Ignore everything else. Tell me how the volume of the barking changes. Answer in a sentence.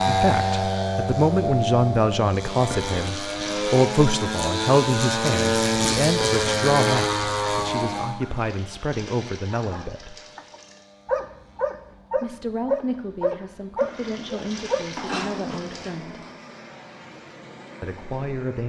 The loudness of the barking goes up, then down.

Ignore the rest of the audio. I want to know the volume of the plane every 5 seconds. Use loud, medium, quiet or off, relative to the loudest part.
loud, loud, quiet, quiet.